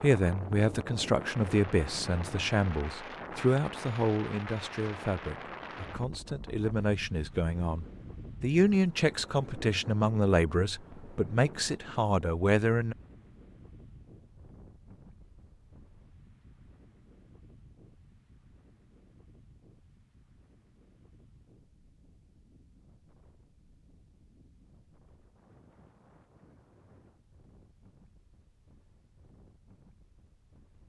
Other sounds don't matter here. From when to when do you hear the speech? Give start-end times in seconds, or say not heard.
0.0-12.9.